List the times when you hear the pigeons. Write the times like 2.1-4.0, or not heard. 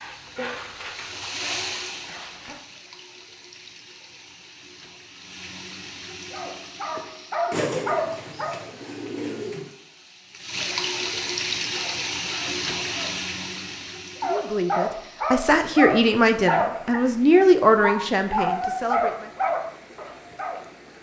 7.5-9.7.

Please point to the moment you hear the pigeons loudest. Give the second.
8 s.